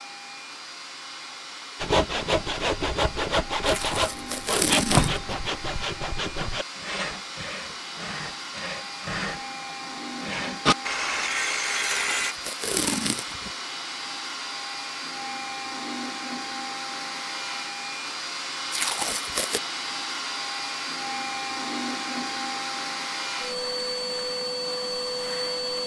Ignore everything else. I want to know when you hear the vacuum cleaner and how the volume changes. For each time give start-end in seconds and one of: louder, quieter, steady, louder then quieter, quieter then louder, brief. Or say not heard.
0.0-25.8 louder.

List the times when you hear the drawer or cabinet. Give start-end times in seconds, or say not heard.
not heard.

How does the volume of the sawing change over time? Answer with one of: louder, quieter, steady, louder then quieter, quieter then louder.
quieter then louder.